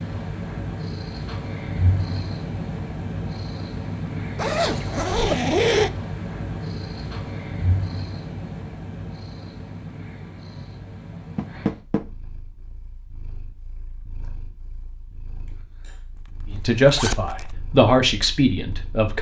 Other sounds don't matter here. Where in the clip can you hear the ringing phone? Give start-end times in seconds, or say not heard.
not heard.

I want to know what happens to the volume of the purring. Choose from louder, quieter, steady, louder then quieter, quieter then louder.
quieter.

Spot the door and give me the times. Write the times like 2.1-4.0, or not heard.
11.3-12.1.